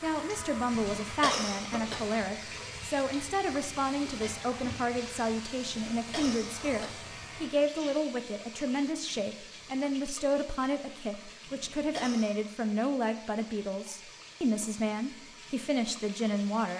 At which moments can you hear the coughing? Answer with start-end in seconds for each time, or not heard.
0.7-2.0, 5.7-7.0, 11.4-12.5.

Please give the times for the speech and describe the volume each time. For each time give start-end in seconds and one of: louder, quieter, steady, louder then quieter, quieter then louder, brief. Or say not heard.
0.0-16.7 steady.